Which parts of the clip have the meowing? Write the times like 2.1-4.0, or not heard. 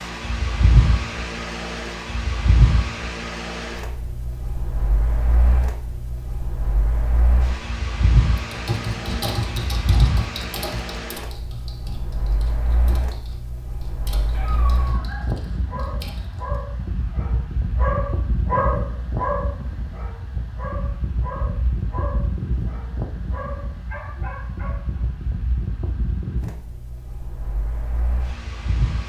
not heard.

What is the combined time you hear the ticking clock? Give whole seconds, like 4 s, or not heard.
not heard.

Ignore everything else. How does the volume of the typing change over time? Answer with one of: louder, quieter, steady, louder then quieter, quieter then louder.
quieter.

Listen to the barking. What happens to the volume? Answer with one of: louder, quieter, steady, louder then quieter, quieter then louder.
louder then quieter.